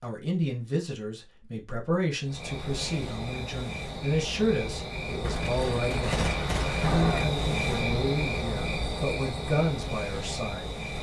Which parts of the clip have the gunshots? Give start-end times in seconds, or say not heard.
5.2-7.2.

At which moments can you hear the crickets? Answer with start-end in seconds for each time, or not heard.
2.2-10.9.